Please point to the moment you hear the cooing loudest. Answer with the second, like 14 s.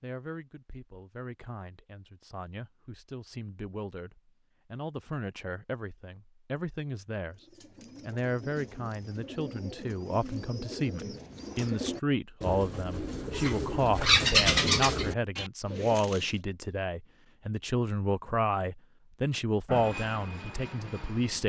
14 s.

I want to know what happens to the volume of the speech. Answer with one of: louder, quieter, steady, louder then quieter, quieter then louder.
louder.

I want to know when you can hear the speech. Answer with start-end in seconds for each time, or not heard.
0.0-7.5, 8.1-21.4.